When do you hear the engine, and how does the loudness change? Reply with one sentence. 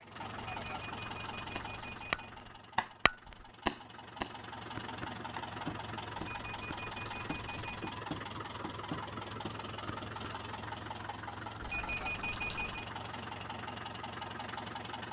The engine can be heard from 0.0 to 15.0 s, at a steady volume.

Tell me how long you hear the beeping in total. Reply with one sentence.
You can hear the beeping for 5 seconds altogether.